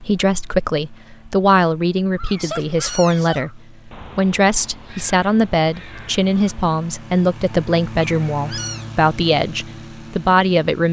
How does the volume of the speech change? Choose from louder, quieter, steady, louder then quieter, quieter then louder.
steady.